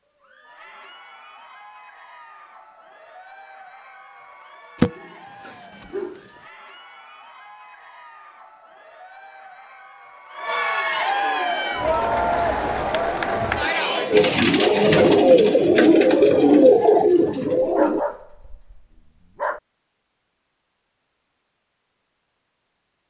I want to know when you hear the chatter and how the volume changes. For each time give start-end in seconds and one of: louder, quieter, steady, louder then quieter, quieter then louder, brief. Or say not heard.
0.1-14.3 louder.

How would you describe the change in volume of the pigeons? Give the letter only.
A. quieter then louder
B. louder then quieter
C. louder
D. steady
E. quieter
C.